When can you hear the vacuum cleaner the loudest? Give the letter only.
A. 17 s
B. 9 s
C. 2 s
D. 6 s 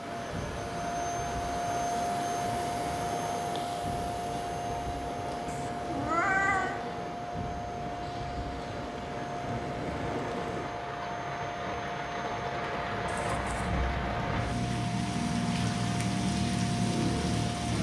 C.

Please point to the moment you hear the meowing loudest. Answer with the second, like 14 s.
6 s.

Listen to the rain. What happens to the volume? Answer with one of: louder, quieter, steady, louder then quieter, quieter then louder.
louder.